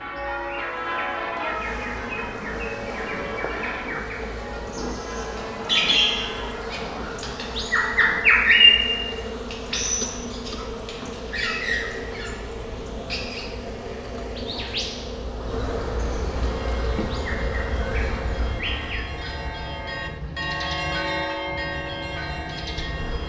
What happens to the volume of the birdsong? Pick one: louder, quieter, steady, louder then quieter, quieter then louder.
louder then quieter.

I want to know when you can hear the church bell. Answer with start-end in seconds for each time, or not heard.
0.0-6.8, 16.6-23.2.